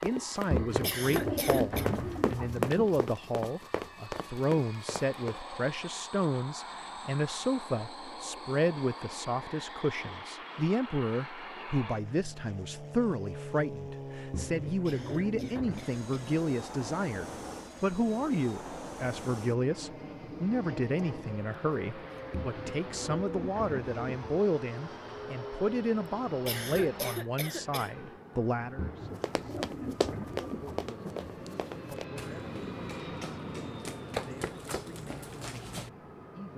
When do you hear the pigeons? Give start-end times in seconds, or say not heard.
0.5-3.0, 14.3-15.9, 22.3-24.4, 28.8-31.7.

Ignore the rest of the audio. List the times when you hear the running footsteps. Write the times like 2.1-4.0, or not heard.
0.0-5.4, 29.2-35.9.